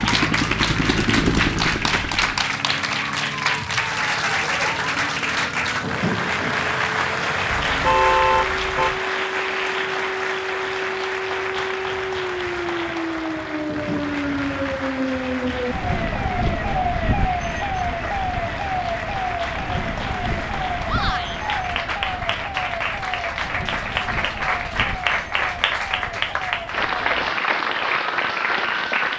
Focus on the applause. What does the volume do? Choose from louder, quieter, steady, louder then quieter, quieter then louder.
quieter then louder.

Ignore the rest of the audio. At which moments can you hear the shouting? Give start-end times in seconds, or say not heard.
20.9-21.4.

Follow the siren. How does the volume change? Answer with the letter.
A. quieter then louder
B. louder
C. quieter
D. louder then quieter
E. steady
D.